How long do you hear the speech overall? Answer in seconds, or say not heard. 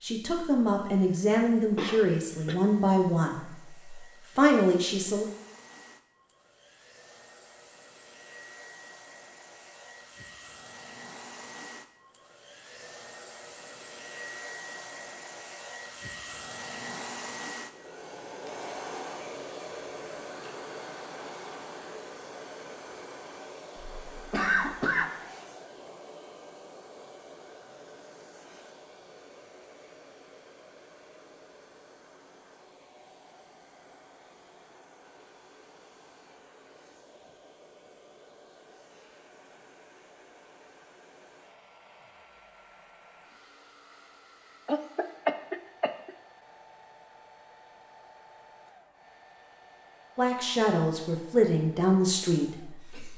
8 s.